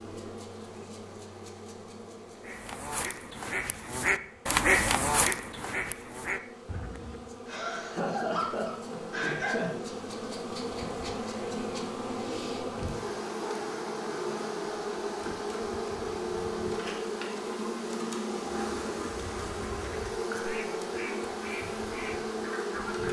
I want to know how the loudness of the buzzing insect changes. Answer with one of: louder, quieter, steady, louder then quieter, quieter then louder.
louder.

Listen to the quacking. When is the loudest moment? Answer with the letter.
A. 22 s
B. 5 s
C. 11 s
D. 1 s
B.